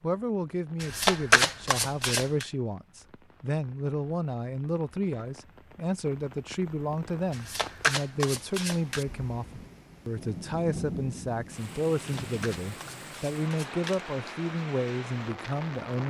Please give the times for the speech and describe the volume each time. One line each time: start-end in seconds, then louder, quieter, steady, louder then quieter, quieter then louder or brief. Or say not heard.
0.0-16.0 steady.